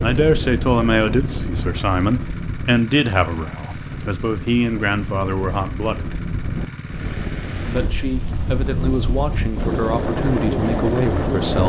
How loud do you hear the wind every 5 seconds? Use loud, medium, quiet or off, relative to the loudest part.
medium, medium, loud.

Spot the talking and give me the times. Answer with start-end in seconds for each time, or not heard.
0.0-6.2, 7.6-11.6.